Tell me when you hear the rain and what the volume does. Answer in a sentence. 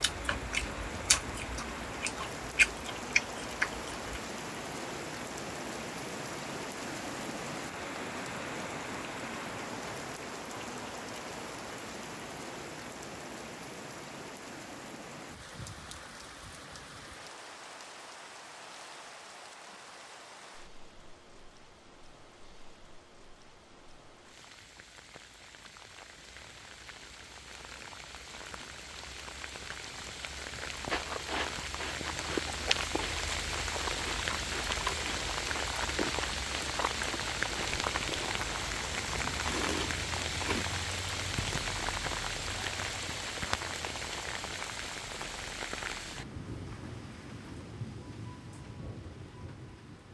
You can hear the rain from 0.0 to 50.0 s, getting quieter then louder.